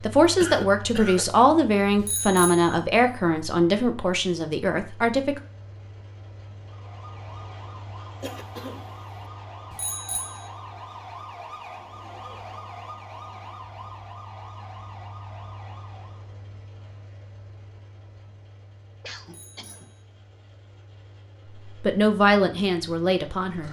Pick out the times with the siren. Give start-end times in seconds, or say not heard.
6.6-16.3.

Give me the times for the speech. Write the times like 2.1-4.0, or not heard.
0.0-5.4, 21.8-23.6.